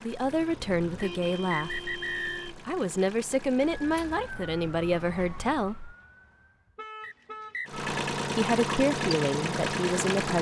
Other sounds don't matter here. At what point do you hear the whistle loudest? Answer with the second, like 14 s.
2 s.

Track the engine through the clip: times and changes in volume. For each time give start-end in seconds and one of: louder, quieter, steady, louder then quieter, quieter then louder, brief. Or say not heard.
0.0-4.3 steady
7.7-10.3 brief.